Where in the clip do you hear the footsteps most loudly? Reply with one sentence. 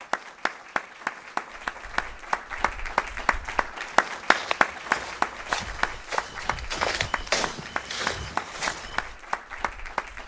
The volume of the footsteps peaks at 7 seconds.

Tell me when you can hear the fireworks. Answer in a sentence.
The fireworks can't be heard in this clip.